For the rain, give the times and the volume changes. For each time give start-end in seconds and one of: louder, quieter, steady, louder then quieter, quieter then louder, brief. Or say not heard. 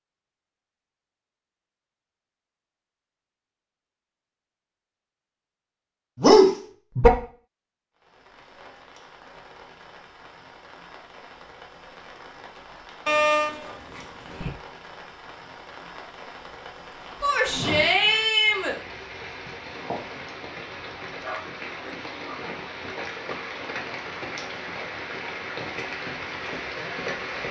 8.0-27.4 louder.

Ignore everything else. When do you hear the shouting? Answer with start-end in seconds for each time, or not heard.
17.2-18.8.